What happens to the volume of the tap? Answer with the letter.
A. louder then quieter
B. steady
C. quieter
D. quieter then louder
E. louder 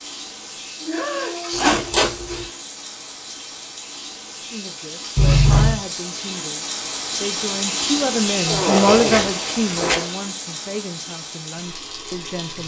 A.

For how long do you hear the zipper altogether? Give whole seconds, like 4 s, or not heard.
3 s.